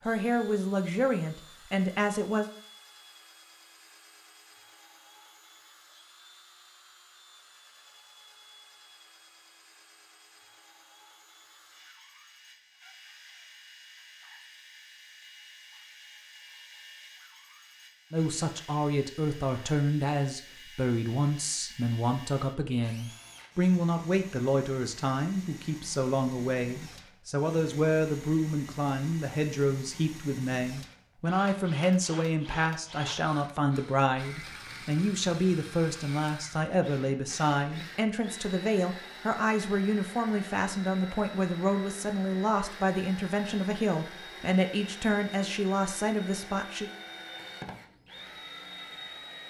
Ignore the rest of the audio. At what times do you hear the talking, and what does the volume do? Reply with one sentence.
You can hear the talking briefly from 0.1 to 2.5 s; and from 18.1 to 46.9 s, at a steady volume.